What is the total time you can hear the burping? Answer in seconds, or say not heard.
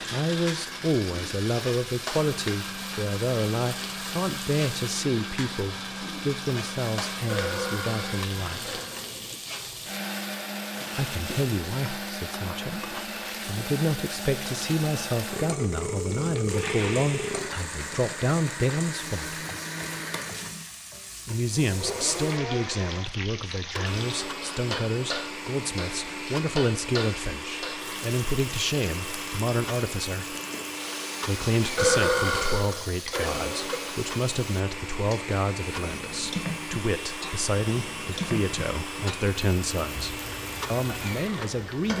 6 s.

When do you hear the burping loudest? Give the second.
32 s.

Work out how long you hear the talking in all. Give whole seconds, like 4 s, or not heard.
37 s.